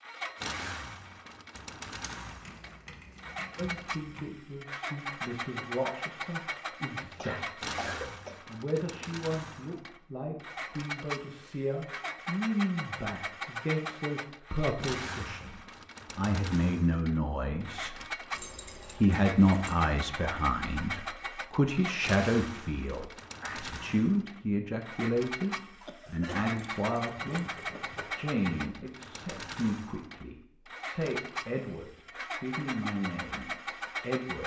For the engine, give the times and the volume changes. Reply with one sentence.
The engine can be heard from 0.0 to 34.4 s, at a steady volume.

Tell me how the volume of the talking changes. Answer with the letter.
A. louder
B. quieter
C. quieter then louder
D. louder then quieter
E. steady
D.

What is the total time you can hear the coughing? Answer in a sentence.
The coughing can be heard for 2 seconds in total.